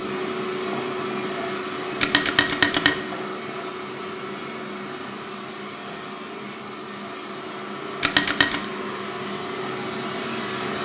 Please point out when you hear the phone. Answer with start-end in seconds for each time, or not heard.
2.0-3.0, 8.0-8.7.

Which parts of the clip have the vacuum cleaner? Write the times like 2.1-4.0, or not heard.
0.0-10.8.